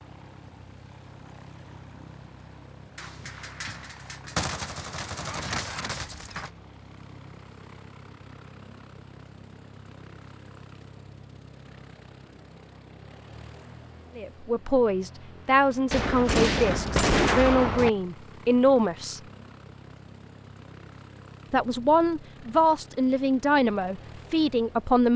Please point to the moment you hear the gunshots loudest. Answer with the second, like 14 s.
17 s.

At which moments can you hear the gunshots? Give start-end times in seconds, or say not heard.
3.0-6.5, 15.9-17.9.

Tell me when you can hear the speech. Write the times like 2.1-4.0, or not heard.
14.2-19.2, 21.5-25.1.